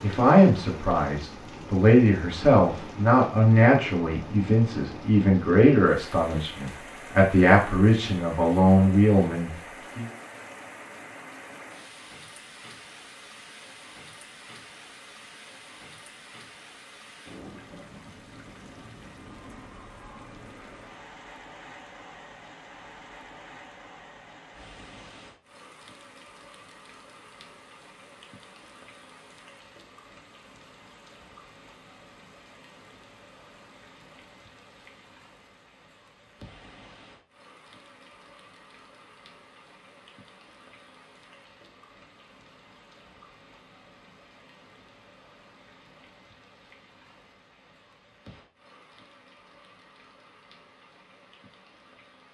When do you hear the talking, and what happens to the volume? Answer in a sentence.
The talking can be heard from 0.0 to 10.1 s, at a steady volume.